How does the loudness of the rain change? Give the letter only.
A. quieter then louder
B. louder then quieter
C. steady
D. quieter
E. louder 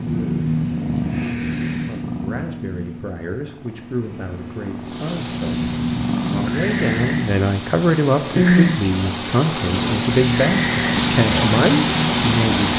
E.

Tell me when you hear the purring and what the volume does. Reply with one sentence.
The purring can be heard from 0.0 to 12.7 s, getting quieter then louder.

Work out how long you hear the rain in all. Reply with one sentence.
You can hear the rain for 8 seconds altogether.